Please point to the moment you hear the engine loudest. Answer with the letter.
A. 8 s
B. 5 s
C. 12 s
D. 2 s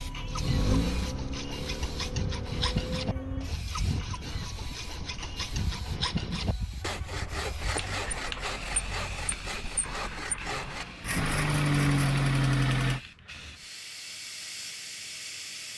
C.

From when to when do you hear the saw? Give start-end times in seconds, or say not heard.
0.1-12.1.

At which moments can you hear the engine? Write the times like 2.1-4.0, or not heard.
0.0-3.5, 7.0-13.0.